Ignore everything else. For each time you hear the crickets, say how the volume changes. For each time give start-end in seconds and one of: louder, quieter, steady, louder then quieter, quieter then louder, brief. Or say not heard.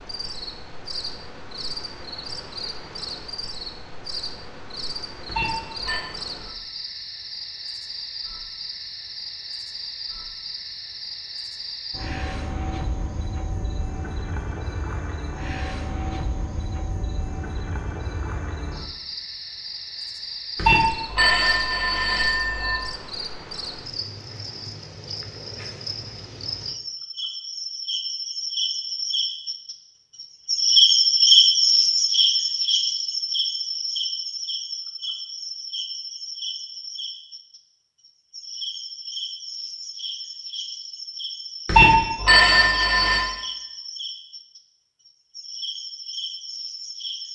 0.0-47.3 louder then quieter.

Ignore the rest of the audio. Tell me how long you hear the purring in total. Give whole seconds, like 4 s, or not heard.
not heard.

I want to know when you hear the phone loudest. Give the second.
42 s.